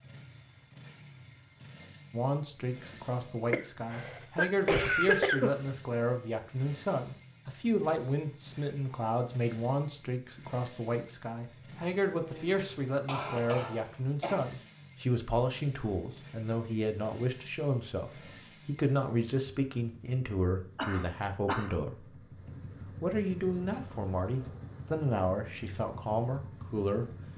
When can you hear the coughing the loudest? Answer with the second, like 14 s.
5 s.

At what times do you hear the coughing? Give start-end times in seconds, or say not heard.
3.5-5.5, 11.7-14.4, 20.8-21.8.